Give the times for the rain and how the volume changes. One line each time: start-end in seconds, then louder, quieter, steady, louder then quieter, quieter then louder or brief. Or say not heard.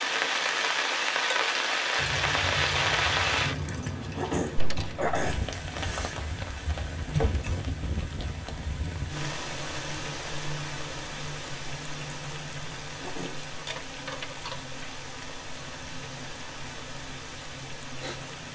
0.0-18.5 quieter.